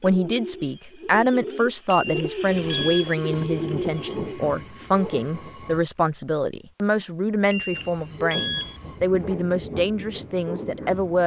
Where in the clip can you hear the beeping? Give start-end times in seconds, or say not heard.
1.9-3.1, 7.5-8.8.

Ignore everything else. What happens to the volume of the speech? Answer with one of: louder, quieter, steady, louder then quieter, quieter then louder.
steady.